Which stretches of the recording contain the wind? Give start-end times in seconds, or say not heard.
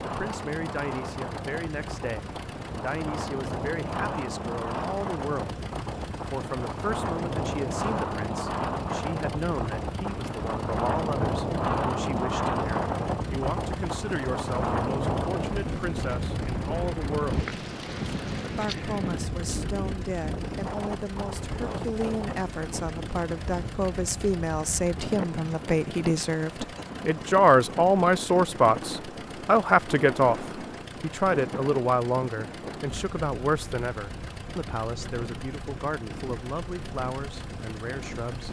0.0-38.4.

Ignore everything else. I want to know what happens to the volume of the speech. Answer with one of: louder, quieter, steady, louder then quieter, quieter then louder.
louder then quieter.